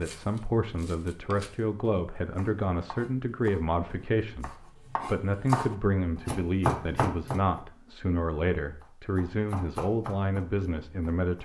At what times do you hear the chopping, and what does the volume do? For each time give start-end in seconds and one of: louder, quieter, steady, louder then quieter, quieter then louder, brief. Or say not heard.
0.0-7.6 louder
8.8-11.4 brief.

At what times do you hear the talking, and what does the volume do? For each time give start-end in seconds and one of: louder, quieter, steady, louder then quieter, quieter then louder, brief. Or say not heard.
0.0-11.4 steady.